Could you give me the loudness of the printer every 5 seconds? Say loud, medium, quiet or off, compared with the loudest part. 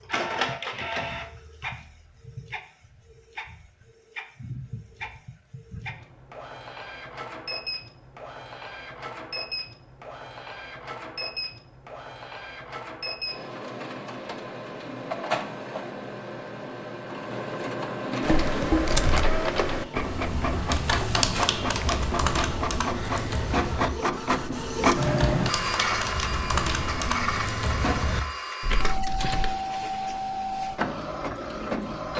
medium, medium, medium, loud, loud, loud, loud.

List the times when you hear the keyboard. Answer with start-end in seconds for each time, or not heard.
18.2-29.6.